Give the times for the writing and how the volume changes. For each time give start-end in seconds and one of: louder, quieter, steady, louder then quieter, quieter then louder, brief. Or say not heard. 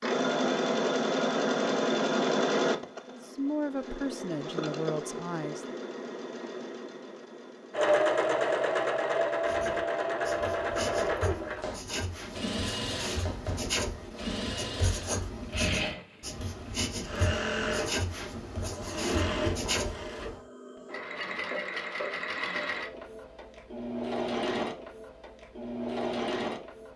9.4-20.4 louder.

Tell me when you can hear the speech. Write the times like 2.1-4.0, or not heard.
3.1-5.8.